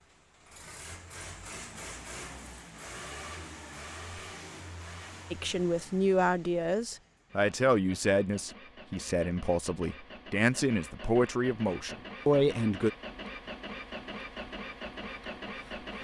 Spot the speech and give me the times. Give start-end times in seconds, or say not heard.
5.3-12.9.